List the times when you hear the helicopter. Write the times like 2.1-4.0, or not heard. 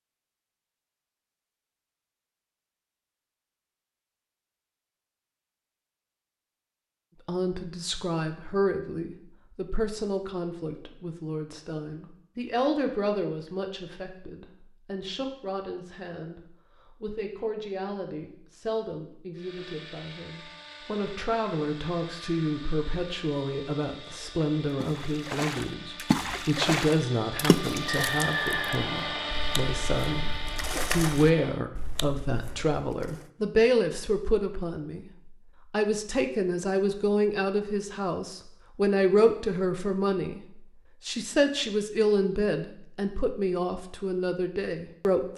19.4-31.6.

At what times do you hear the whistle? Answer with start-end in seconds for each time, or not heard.
27.9-29.4.